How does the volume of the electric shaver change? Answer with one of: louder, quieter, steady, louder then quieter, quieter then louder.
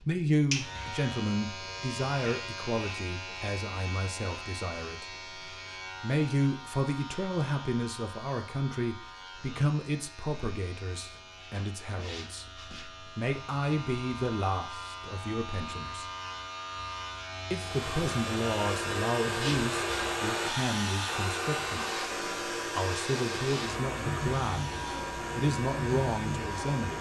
quieter then louder.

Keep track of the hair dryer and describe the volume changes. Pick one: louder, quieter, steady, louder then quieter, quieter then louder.
quieter.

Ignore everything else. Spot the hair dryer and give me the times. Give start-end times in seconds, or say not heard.
17.6-26.9.